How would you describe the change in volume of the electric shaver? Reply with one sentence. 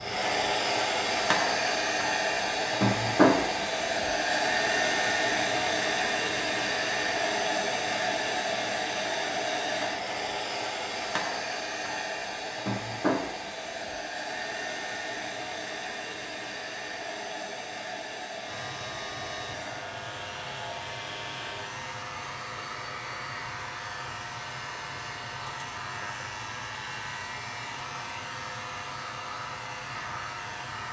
The loudness of the electric shaver stays about the same.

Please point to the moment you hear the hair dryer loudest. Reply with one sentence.
The loudest moment of the hair dryer is at 3 seconds.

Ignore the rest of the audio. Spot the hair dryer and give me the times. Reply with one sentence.
The hair dryer can be heard from 0.0 to 30.8 s.